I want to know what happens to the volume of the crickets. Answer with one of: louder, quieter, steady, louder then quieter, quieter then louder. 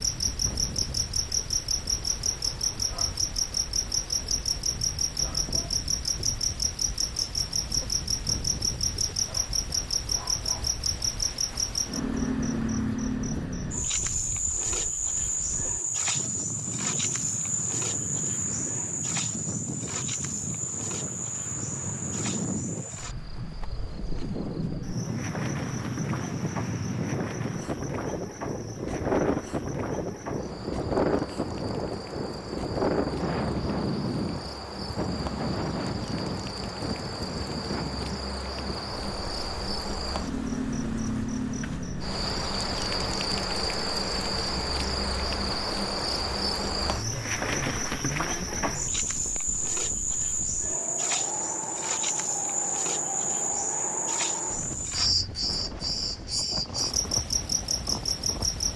quieter then louder.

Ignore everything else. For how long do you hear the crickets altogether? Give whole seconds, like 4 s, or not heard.
59 s.